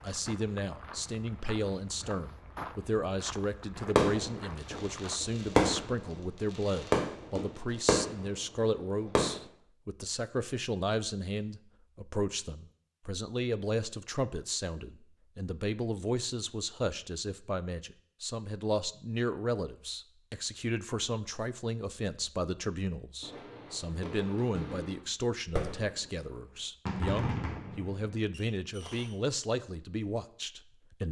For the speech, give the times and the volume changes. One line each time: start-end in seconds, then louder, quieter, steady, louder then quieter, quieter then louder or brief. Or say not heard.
0.0-31.0 steady.